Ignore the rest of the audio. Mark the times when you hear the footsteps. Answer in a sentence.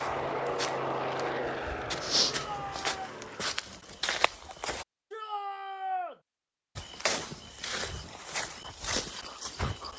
The footsteps can be heard from 0.0 to 4.8 s and from 6.8 to 9.9 s.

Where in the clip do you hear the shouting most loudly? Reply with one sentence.
The loudest moment of the shouting is at 6 seconds.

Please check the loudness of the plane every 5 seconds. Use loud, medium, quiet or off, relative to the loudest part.
loud, off.